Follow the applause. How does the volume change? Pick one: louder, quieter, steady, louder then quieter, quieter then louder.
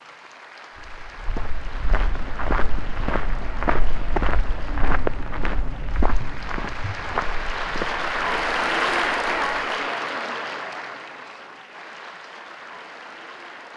louder then quieter.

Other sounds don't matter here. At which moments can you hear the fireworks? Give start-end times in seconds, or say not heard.
not heard.